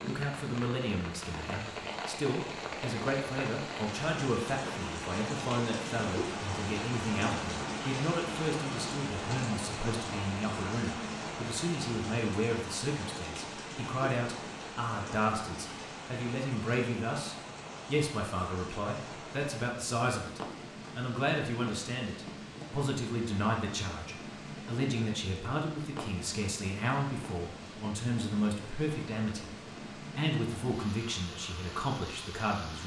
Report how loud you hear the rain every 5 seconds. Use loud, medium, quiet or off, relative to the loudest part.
loud, loud, loud, medium, medium, medium, medium.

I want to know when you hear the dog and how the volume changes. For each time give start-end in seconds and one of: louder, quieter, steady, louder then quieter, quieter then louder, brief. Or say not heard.
not heard.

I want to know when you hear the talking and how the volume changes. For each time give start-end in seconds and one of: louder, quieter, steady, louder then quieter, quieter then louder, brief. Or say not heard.
0.1-32.8 steady.